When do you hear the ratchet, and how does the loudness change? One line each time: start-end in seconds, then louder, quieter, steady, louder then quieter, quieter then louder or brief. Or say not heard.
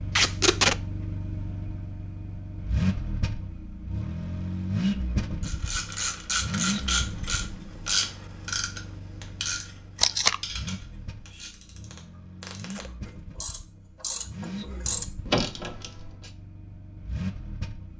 5.4-16.3 quieter then louder.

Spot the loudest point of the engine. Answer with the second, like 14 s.
5 s.